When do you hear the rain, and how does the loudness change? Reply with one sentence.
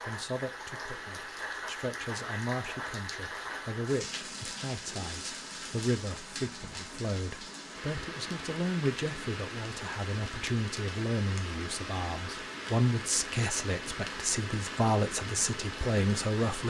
You can hear the rain from 0.0 to 16.6 s, at a steady volume.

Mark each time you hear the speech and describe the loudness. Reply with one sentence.
The speech can be heard from 0.0 to 16.6 s, getting louder.